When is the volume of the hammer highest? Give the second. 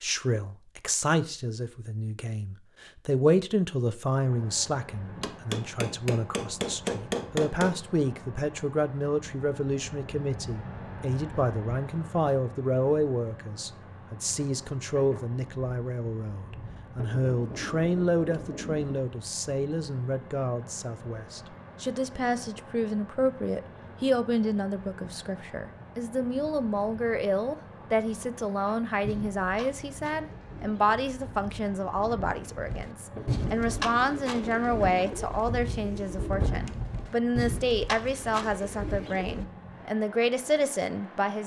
7 s.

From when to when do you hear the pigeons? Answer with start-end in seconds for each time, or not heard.
28.6-39.5.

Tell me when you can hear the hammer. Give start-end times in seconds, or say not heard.
5.2-7.8.